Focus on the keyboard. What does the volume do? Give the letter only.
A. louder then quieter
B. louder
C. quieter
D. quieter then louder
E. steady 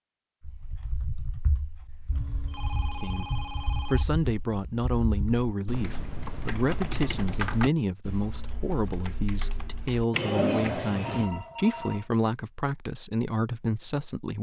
B.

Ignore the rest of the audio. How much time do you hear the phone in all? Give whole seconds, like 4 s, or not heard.
3 s.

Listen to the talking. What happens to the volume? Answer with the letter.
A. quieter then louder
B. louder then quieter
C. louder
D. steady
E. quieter
D.